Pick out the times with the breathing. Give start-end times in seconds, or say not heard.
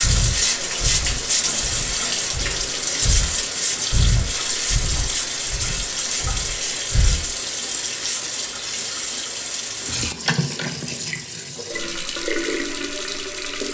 0.0-7.3.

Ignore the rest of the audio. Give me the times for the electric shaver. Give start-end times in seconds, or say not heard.
not heard.